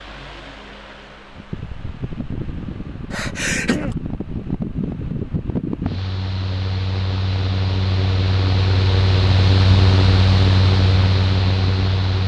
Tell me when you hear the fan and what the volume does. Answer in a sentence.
You can hear the fan from 0.0 to 12.2 s, getting louder.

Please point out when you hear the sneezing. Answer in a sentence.
You can hear the sneezing from 3.1 to 4.0 s.